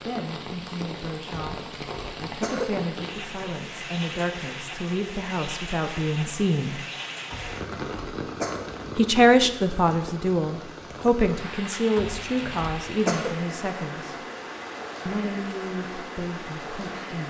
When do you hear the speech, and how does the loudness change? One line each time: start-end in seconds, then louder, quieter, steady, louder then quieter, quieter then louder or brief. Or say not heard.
0.1-6.8 louder
8.9-14.2 quieter
15.1-17.2 brief.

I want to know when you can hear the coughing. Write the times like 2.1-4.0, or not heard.
1.3-2.7, 7.3-8.7, 11.9-13.3.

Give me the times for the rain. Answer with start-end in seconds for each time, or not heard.
0.0-17.2.